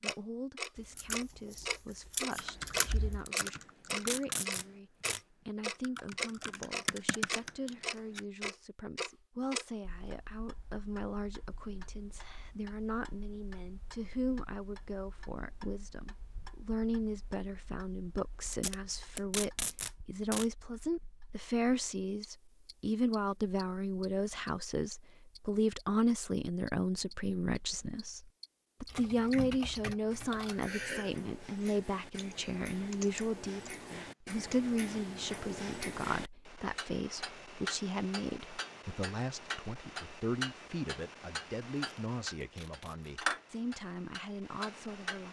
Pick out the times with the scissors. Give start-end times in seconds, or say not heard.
0.8-3.2.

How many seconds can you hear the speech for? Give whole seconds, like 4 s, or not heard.
45 s.